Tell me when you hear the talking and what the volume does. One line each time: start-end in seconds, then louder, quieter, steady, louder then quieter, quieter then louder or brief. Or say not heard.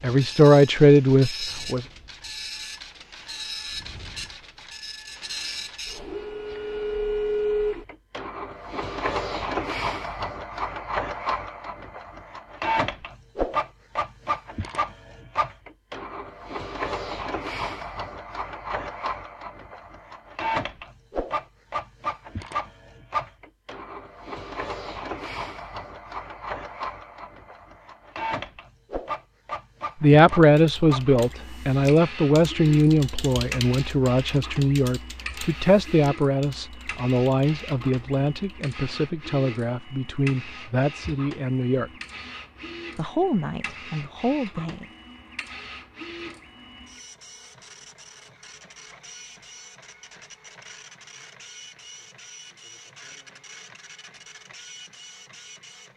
0.0-1.9 brief
30.0-41.9 quieter
43.0-44.9 brief.